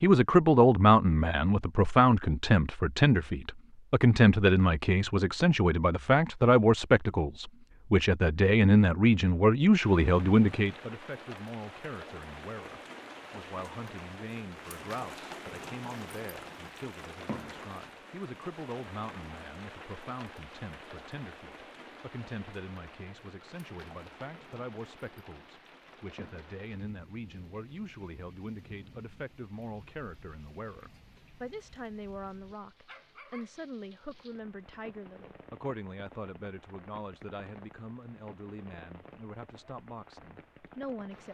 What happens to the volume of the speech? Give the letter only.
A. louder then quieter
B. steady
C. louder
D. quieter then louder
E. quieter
E.